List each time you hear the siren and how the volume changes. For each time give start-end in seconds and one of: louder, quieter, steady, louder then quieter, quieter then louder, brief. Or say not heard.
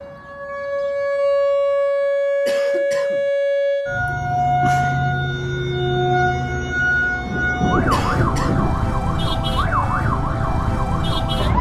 0.0-11.5 steady.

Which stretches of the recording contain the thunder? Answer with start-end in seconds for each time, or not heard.
7.2-8.8.